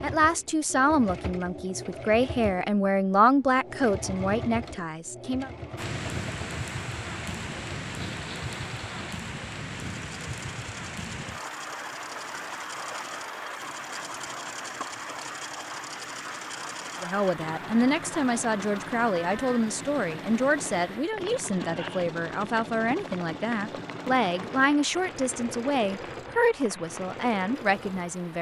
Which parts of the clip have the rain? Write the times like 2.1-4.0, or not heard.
5.8-28.3.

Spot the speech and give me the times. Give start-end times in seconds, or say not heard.
0.0-5.5, 17.0-28.3.